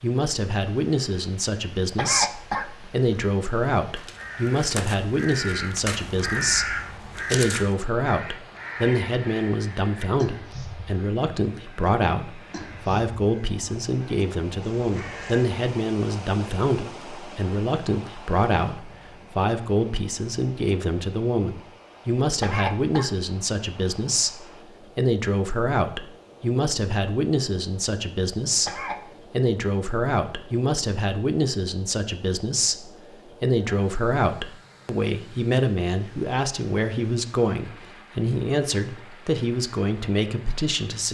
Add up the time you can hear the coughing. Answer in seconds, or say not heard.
3 s.